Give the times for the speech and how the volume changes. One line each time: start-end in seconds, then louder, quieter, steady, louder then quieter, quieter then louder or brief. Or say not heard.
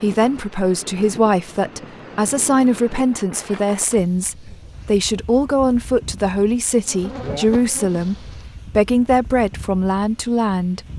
0.0-10.8 steady.